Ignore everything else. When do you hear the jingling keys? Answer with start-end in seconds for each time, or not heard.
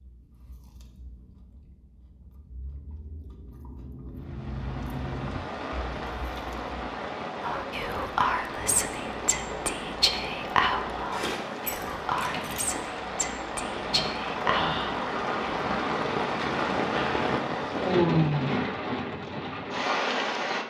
11.1-12.7.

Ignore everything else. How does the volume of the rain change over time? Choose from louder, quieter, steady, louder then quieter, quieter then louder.
louder.